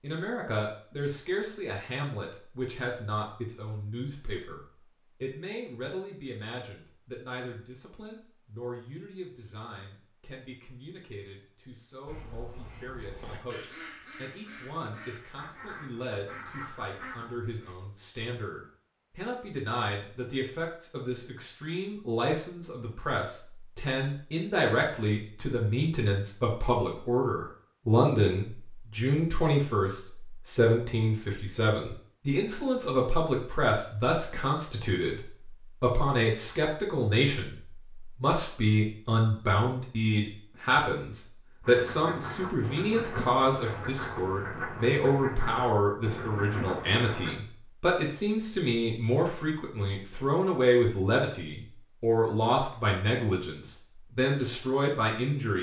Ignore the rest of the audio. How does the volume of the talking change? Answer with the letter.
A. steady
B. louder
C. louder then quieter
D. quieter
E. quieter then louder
B.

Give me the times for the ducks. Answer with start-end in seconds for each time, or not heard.
12.1-17.8, 41.6-47.4.